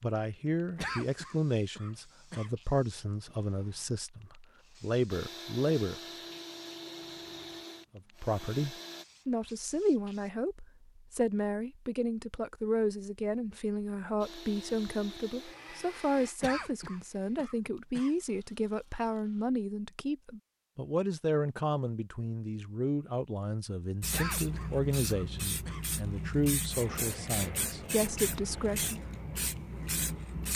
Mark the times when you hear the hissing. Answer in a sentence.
You can hear the hissing from 0.0 to 10.3 s and from 24.0 to 30.5 s.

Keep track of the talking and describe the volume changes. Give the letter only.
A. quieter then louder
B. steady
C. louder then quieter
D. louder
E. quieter
B.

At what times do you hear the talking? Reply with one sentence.
You can hear the talking from 0.0 to 6.0 s and from 8.0 to 28.9 s.